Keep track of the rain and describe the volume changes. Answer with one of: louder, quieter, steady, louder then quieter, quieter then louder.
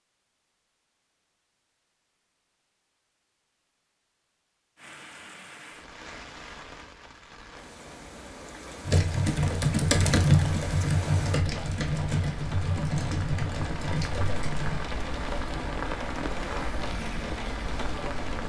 louder.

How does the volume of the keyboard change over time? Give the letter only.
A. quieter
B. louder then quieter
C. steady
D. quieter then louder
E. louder
A.